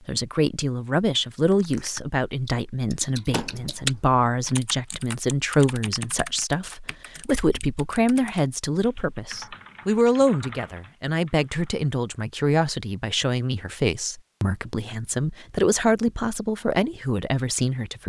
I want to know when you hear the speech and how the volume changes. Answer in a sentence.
You can hear the speech from 0.1 to 18.0 s, at a steady volume.